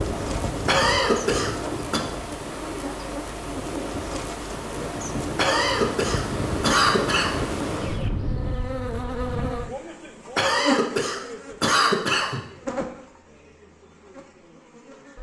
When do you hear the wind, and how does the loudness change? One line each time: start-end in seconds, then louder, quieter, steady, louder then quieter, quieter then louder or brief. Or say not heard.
0.0-9.7 quieter then louder.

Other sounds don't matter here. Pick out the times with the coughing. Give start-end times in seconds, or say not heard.
0.7-2.0, 5.3-7.5, 10.3-12.4.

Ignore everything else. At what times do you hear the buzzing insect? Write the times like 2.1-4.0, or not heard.
0.0-15.1.